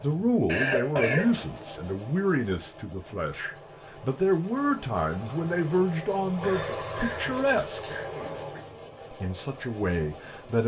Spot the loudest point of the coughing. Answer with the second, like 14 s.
1 s.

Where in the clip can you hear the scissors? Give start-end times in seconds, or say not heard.
7.3-8.5.